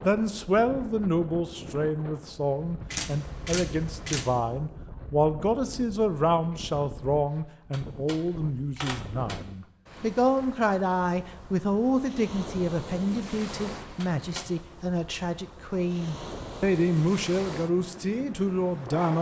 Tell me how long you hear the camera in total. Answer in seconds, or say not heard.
4 s.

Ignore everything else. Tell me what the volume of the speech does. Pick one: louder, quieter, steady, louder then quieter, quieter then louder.
steady.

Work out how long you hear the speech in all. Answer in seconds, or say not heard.
19 s.